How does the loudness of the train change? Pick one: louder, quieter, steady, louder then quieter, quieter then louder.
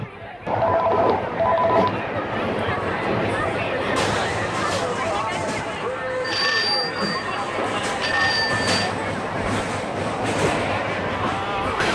quieter then louder.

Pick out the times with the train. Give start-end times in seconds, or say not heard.
0.0-11.8.